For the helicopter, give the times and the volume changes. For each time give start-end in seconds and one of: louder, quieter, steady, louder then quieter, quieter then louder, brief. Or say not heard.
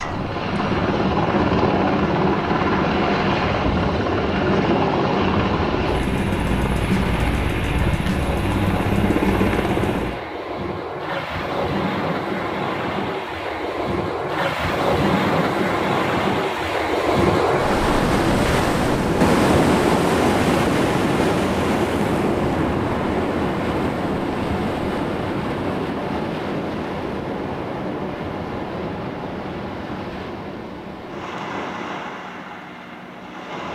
0.0-10.2 steady.